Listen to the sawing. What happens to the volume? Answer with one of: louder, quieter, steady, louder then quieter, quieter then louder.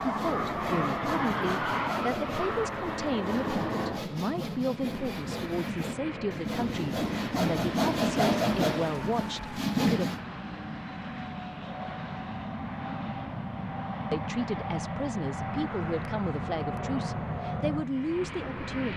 louder.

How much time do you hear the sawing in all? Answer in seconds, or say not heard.
10 s.